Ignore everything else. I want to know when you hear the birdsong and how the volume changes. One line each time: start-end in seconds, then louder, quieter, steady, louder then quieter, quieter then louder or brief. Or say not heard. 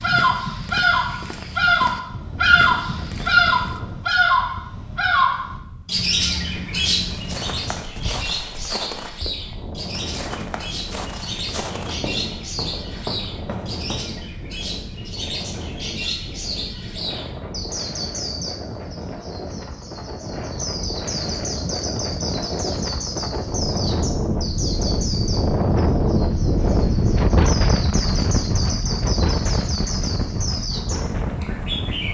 0.0-32.0 quieter.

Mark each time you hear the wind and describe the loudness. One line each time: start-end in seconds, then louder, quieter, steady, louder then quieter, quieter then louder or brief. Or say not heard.
0.0-32.0 louder.